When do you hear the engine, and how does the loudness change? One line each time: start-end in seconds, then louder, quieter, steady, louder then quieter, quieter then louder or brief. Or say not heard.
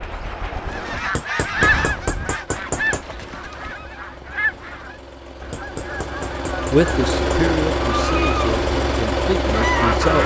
0.0-10.2 louder.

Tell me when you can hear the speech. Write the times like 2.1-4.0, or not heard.
6.7-10.2.